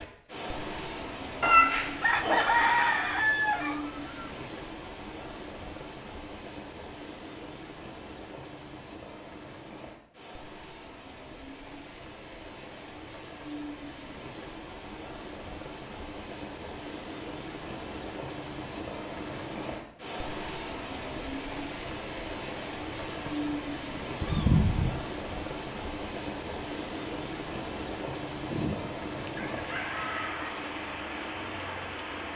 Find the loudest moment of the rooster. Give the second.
3 s.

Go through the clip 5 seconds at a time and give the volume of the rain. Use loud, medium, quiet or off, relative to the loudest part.
loud, medium, medium, loud, loud, loud, loud.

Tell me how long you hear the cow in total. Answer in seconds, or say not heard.
not heard.